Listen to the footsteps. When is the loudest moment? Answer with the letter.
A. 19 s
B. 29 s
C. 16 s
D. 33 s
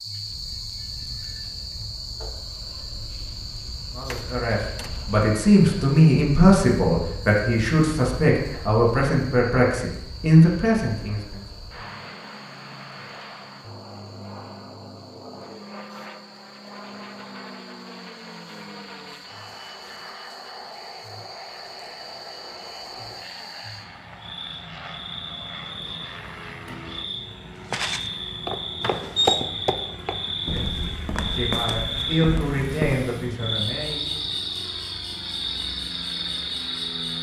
B.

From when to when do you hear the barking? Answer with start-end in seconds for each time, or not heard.
not heard.